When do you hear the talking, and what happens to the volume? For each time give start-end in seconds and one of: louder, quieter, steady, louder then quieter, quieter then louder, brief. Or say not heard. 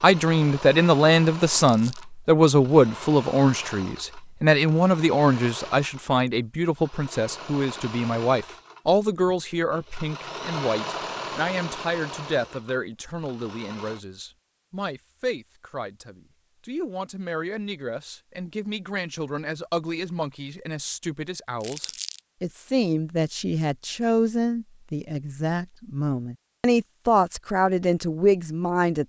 0.0-29.0 quieter then louder.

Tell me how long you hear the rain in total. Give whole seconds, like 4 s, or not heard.
not heard.